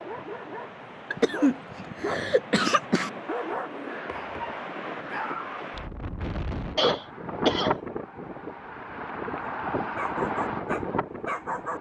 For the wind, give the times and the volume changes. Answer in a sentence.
You can hear the wind from 0.0 to 11.7 s, getting louder.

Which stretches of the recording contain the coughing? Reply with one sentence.
The coughing can be heard from 1.1 to 3.1 s and from 6.8 to 7.8 s.